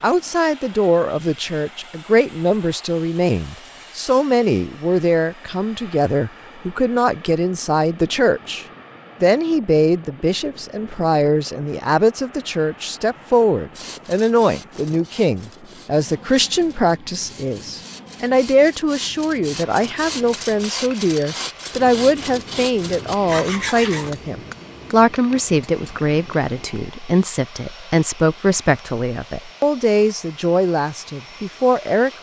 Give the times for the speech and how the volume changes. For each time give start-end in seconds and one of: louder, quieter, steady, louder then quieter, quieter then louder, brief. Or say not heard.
0.0-32.1 steady.